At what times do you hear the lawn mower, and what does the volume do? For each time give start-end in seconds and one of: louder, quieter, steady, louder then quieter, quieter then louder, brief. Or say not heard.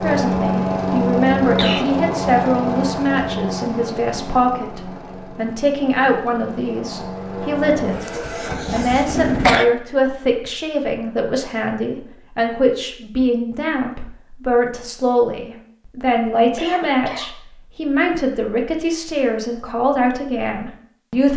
0.0-9.6 quieter then louder.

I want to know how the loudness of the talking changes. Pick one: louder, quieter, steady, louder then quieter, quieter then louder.
steady.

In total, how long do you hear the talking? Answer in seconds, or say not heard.
21 s.